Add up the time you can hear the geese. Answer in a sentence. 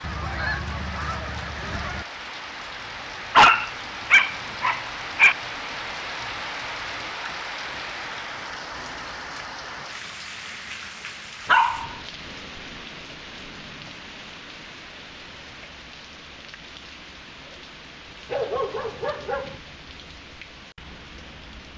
You can hear the geese for 2 seconds altogether.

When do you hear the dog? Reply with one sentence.
The dog can be heard from 3.4 to 5.3 s, from 11.4 to 11.9 s and from 18.2 to 19.6 s.